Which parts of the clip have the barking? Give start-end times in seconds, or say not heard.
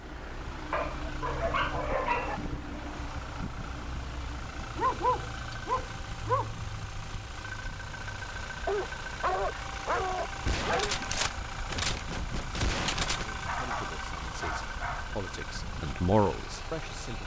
0.7-2.4, 4.8-6.5, 8.7-10.9, 13.4-15.2.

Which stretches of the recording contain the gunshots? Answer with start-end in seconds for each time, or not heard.
10.4-13.3.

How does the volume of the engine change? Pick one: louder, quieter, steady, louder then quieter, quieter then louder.
steady.